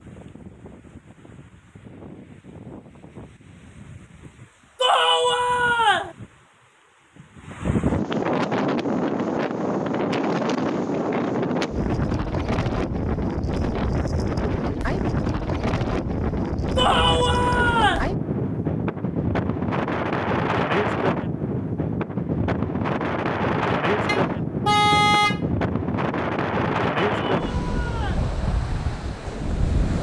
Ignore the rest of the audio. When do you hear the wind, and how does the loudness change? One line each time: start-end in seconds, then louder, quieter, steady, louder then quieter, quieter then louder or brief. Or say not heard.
0.0-29.9 louder.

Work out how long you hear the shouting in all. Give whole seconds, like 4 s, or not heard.
4 s.